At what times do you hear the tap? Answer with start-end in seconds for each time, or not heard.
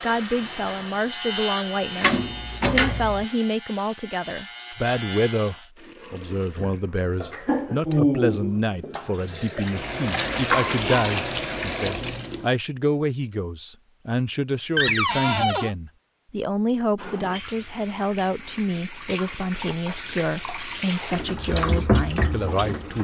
0.0-2.1, 5.8-12.5, 16.9-23.0.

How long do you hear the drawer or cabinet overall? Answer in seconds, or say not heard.
2 s.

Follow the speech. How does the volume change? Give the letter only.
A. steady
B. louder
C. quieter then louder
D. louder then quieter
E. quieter
A.